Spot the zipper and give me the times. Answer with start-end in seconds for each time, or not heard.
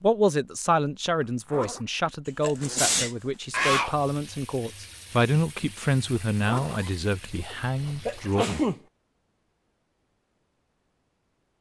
1.2-1.9, 6.4-8.3.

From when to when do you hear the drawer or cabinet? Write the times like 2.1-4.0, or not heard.
not heard.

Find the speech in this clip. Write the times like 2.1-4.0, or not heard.
0.0-8.4.